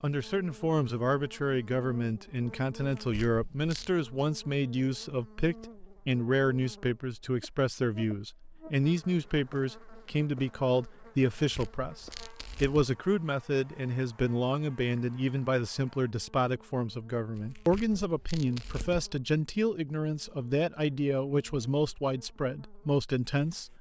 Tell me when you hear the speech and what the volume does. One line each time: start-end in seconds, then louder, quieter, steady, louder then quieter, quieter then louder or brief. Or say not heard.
0.0-23.7 steady.